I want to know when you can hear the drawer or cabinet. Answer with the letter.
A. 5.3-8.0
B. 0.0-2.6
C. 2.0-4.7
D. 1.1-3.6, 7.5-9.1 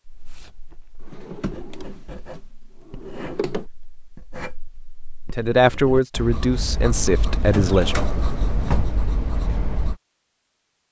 D.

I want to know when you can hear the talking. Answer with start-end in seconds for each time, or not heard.
5.3-8.0.